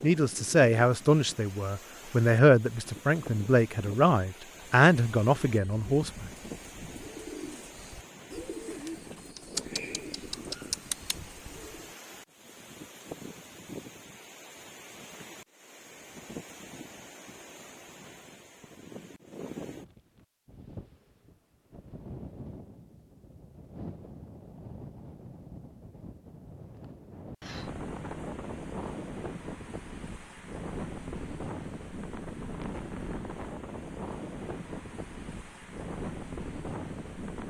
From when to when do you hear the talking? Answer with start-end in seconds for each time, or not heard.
0.0-6.2.